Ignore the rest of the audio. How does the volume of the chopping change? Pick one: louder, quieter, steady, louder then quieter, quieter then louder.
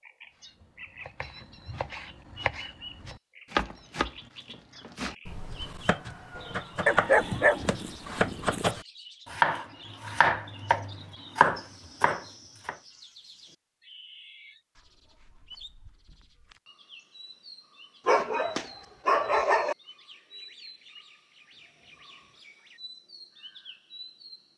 louder.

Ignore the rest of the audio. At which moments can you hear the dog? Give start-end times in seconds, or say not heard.
6.8-8.8, 18.1-19.8.